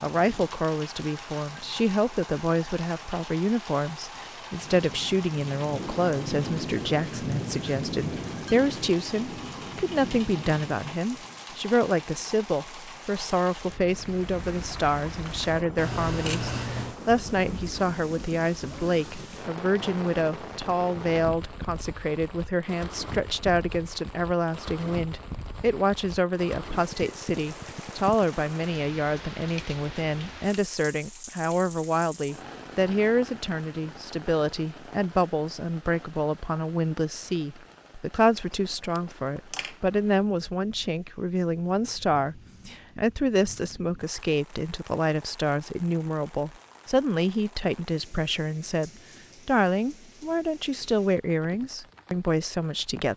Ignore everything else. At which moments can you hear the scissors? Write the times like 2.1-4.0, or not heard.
15.8-17.0, 38.4-39.8.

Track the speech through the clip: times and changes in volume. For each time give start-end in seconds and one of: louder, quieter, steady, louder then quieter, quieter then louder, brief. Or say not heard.
0.0-53.1 steady.